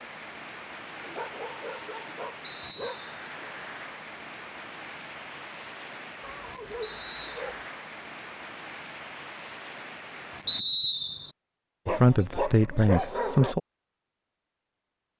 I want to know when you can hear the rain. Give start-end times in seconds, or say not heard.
0.0-10.6.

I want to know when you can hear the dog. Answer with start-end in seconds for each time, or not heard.
0.9-3.1, 6.2-7.7, 11.8-13.6.